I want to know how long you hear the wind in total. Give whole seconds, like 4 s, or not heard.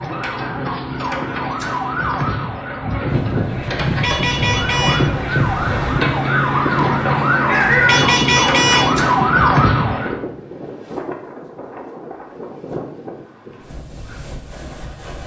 12 s.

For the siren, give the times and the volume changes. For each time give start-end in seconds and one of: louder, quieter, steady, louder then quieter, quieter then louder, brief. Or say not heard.
0.0-10.2 louder.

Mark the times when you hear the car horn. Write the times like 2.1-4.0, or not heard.
4.0-5.0, 7.8-8.9.